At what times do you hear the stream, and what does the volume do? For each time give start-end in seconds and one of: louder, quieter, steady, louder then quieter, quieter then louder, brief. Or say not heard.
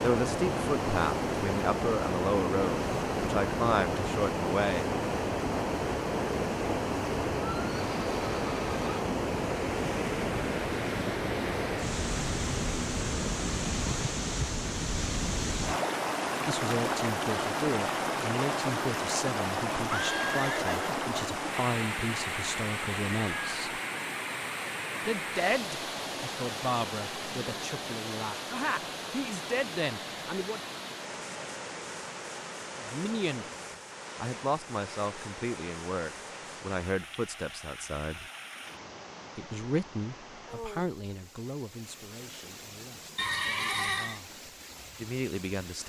0.0-45.8 quieter.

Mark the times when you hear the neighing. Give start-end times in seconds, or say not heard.
7.3-9.0, 19.9-21.1, 43.1-44.2.